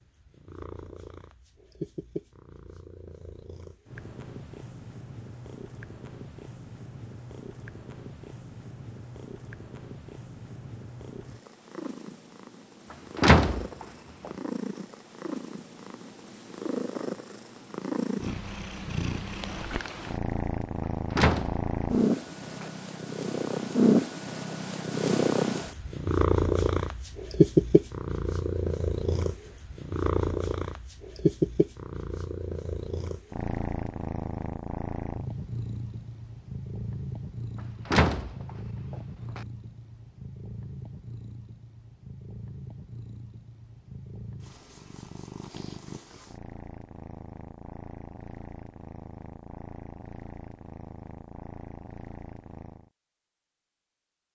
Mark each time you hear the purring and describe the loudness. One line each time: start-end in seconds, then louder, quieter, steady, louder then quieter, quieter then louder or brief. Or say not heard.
0.0-52.9 louder then quieter.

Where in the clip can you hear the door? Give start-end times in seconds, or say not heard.
13.2-14.3, 21.1-22.6, 37.9-39.4.